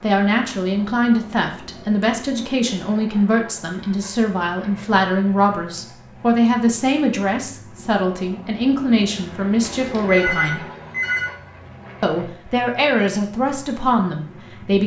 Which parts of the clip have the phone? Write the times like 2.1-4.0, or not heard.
9.8-11.3.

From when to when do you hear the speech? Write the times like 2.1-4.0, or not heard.
0.0-10.7, 12.0-14.8.